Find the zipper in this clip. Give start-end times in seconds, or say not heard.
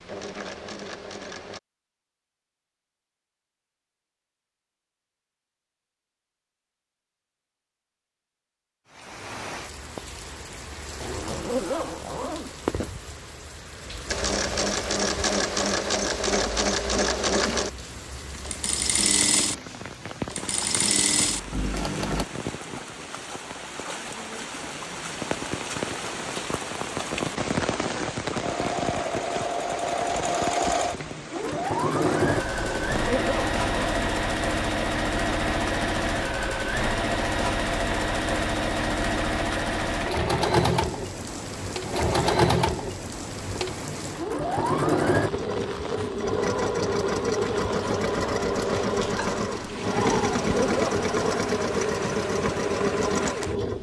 11.0-12.5, 32.5-34.0, 50.3-51.5.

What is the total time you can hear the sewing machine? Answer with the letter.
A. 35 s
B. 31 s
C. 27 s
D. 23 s
A.